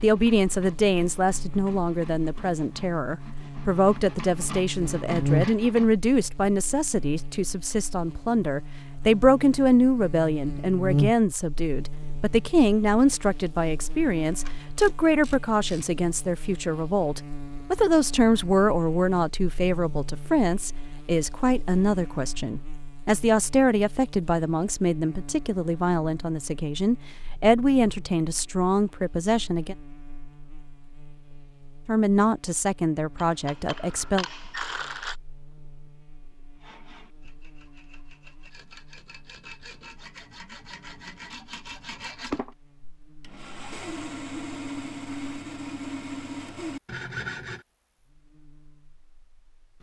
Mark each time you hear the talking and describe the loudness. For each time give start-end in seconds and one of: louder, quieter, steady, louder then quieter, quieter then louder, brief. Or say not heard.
0.0-29.8 steady
31.9-34.2 brief.